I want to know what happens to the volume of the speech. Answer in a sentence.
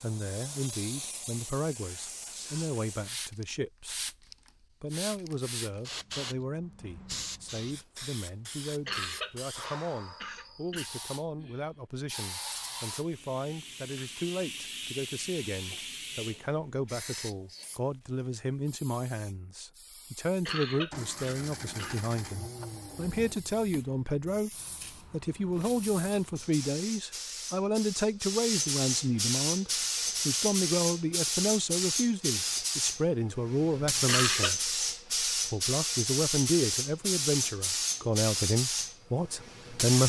The loudness of the speech goes up.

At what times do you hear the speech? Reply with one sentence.
You can hear the speech from 0.0 to 24.5 s and from 25.1 to 40.0 s.